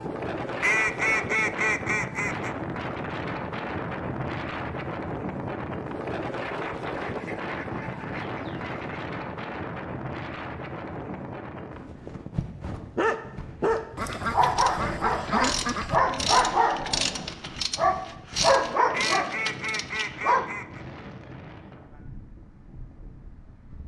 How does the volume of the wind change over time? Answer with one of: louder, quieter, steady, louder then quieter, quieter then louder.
quieter.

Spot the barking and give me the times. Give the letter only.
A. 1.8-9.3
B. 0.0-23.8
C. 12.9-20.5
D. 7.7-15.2
C.